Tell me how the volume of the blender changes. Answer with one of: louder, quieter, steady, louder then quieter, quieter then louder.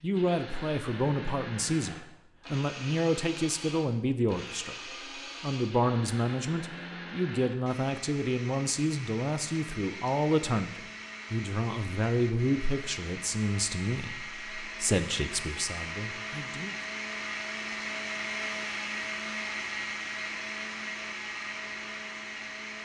louder.